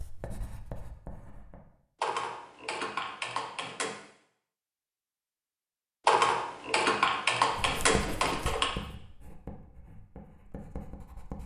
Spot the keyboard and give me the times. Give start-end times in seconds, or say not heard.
2.0-4.0, 6.0-8.7.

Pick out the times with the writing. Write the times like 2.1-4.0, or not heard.
0.0-1.6, 7.5-11.4.